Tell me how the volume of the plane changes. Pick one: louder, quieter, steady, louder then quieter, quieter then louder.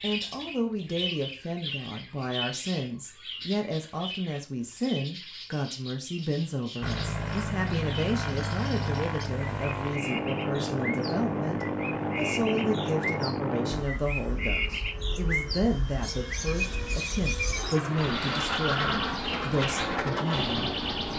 quieter then louder.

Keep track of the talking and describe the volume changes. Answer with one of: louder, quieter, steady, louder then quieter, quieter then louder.
steady.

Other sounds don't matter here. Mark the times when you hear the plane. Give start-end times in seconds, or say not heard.
6.8-21.1.